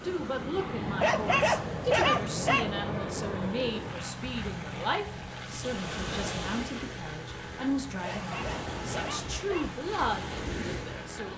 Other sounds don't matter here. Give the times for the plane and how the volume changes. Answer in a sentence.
You can hear the plane from 0.0 to 11.3 s, getting quieter.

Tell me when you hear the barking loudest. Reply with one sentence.
The loudest moment of the barking is at 2 seconds.